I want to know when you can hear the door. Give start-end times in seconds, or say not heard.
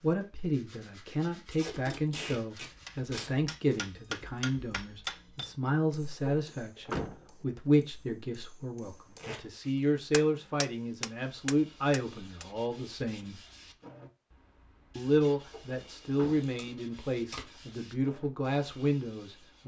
6.2-8.2, 15.5-16.5.